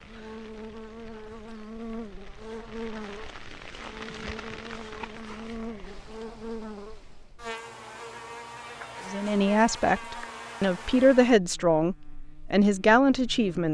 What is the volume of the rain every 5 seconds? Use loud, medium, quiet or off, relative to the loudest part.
loud, loud, off.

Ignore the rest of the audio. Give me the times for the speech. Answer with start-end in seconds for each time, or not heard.
9.1-13.7.